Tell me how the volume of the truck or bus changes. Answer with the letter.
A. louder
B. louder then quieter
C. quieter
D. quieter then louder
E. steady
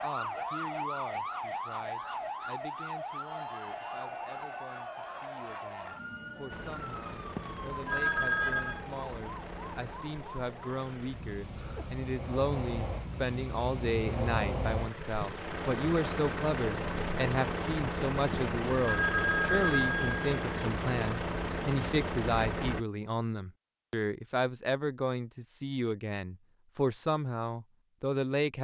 A.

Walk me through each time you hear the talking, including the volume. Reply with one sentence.
You can hear the talking from 0.0 to 28.5 s, getting louder.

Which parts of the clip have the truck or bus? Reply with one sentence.
You can hear the truck or bus from 6.5 to 22.9 s.